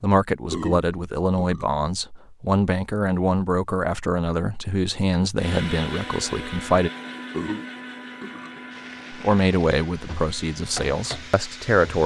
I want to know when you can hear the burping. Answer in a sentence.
You can hear the burping from 0.5 to 1.8 s and from 7.3 to 8.6 s.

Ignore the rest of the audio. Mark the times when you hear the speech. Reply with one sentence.
The speech can be heard from 0.0 to 6.9 s and from 9.1 to 12.0 s.